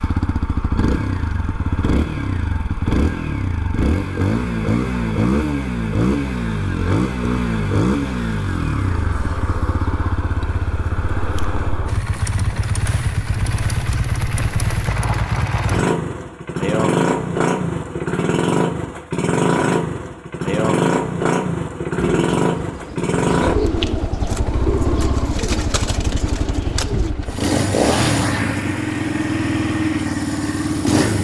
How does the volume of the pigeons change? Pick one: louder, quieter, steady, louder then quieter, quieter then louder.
louder then quieter.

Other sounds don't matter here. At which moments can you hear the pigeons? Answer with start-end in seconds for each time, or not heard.
21.9-27.1.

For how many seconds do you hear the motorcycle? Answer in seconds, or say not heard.
31 s.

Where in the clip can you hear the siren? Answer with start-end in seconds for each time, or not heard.
not heard.